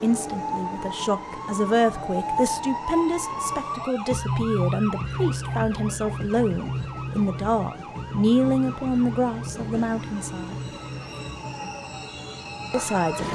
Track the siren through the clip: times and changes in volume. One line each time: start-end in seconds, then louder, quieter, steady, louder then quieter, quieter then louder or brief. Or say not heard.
0.0-13.3 quieter.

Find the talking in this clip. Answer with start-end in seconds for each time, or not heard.
0.0-10.6, 12.7-13.3.